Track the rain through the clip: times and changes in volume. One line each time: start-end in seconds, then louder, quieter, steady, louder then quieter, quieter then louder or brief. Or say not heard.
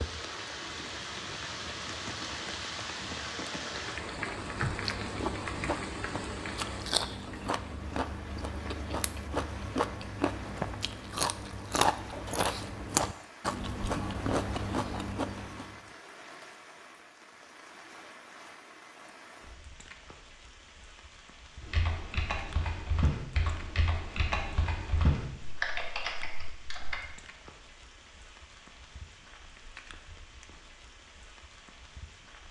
0.0-32.4 quieter.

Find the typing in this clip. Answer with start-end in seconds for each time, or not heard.
21.6-27.0.